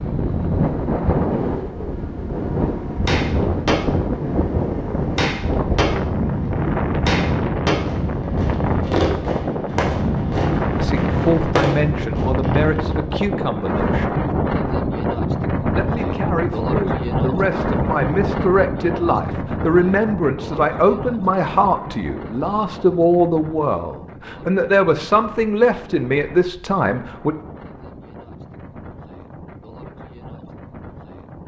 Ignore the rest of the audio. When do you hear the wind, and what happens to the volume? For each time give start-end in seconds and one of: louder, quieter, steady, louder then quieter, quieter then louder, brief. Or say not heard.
0.0-31.4 quieter.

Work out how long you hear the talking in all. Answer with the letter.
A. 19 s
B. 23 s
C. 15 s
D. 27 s
C.